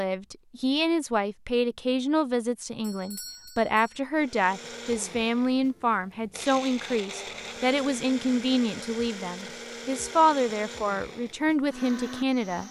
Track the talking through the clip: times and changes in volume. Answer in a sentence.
You can hear the talking from 0.0 to 12.6 s, at a steady volume.